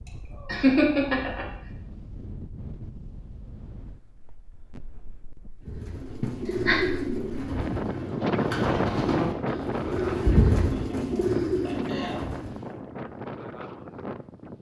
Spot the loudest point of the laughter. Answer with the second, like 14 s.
1 s.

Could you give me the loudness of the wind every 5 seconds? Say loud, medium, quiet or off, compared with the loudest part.
quiet, loud, medium.